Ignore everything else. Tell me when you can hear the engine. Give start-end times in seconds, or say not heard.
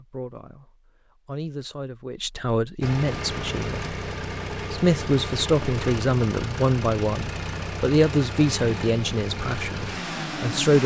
2.8-10.8.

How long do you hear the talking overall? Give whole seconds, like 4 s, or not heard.
10 s.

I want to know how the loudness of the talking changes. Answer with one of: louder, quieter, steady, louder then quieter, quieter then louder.
louder.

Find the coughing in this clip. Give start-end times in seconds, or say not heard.
not heard.